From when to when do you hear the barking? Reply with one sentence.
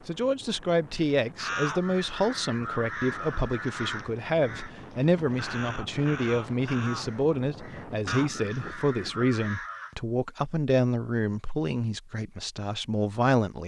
You can't hear the barking here.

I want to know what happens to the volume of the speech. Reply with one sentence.
The loudness of the speech stays about the same.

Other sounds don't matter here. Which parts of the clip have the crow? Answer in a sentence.
You can hear the crow from 1.4 to 9.9 s.